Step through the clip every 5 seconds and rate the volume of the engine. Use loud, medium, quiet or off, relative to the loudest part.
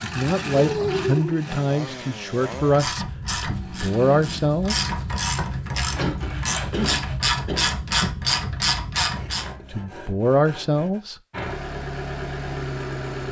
loud, off, loud.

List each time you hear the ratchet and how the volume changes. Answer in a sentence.
The ratchet can be heard from 2.3 to 9.6 s, getting louder.